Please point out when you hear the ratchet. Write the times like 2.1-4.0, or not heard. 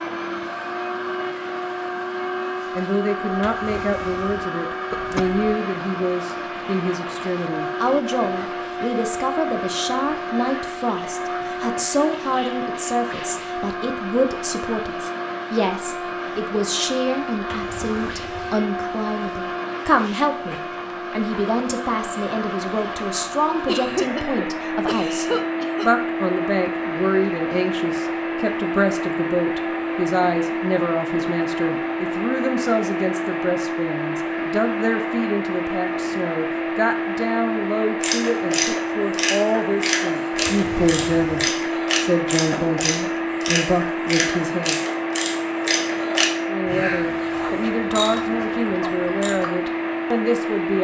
38.0-49.5.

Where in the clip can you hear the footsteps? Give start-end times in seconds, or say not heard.
not heard.